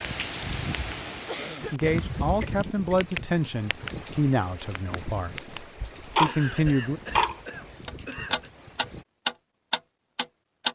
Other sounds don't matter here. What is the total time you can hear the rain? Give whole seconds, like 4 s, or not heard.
9 s.